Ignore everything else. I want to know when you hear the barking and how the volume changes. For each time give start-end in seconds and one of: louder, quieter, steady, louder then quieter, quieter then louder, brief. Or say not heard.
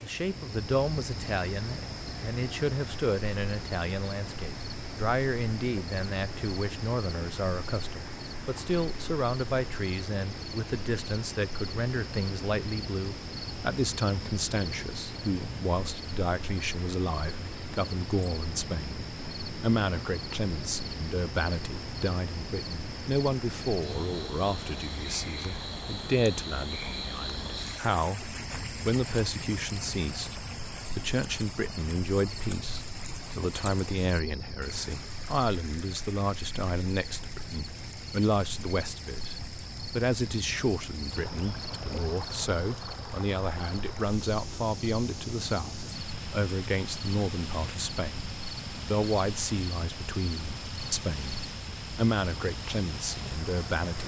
not heard.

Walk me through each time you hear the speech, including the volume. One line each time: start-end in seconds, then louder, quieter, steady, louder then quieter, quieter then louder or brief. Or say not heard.
0.0-54.0 steady.